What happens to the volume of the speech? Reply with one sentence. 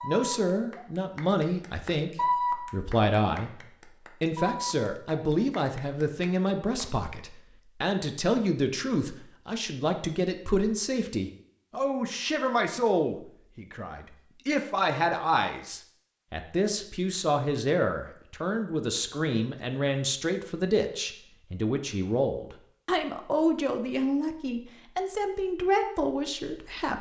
The loudness of the speech stays about the same.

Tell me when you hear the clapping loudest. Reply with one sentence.
The volume of the clapping peaks at 2 seconds.